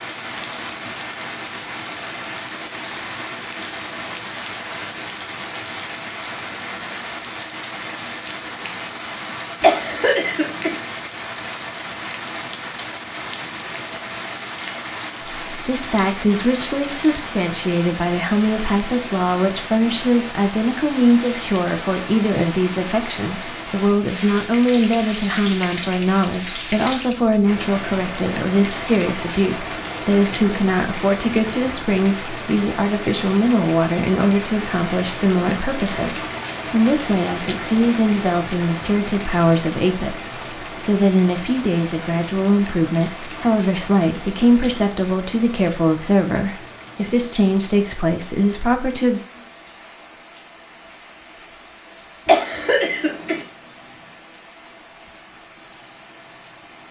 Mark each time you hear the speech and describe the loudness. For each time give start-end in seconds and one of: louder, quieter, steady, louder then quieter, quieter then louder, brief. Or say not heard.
15.5-49.2 steady.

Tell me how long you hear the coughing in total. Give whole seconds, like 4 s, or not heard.
2 s.